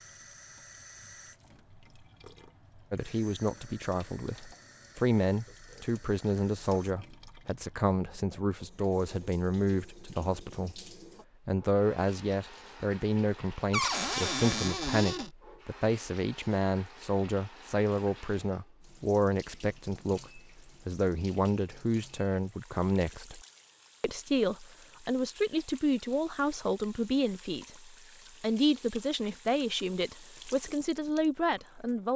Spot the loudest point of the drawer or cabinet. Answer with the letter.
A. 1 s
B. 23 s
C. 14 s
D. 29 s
C.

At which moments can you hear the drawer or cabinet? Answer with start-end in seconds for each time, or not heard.
13.7-15.3.